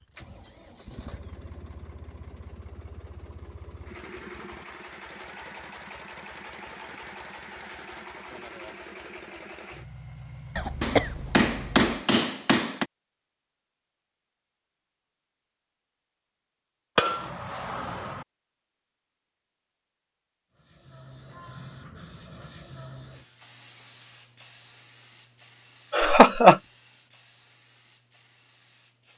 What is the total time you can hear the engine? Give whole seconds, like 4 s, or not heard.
12 s.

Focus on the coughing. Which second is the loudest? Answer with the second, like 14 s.
26 s.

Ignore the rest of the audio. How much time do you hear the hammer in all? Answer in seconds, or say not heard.
3 s.